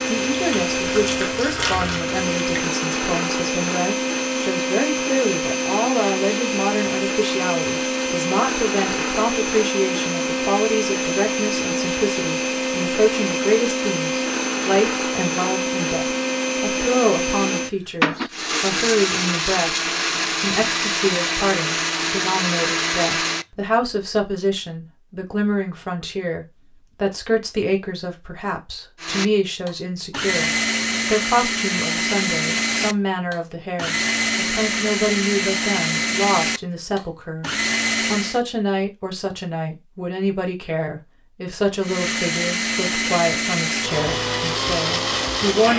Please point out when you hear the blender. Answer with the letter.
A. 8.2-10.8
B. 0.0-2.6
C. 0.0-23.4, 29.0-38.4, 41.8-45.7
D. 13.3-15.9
C.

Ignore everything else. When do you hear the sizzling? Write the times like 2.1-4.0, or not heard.
0.0-2.6.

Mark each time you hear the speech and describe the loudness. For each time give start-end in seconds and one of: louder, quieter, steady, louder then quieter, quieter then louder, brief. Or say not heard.
0.1-45.7 steady.